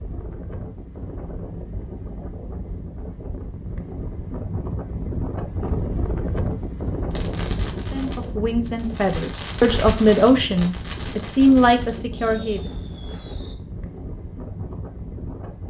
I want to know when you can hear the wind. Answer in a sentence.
The wind can be heard from 0.0 to 15.6 s.